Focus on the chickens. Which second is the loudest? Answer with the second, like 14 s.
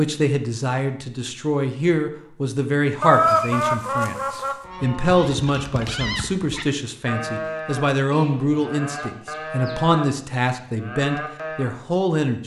3 s.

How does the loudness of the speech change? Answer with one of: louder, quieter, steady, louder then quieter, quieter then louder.
steady.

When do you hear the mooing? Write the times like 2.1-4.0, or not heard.
4.6-11.8.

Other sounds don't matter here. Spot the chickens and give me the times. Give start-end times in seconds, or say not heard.
3.0-4.5, 8.1-9.9.